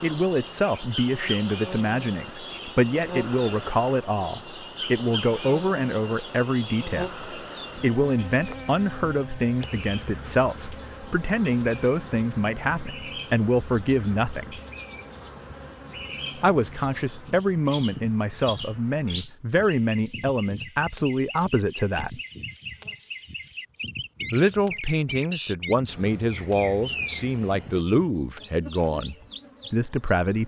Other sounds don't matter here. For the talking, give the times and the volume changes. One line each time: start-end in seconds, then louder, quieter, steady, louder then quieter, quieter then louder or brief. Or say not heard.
0.0-14.6 steady
16.4-22.2 steady
24.3-30.4 steady.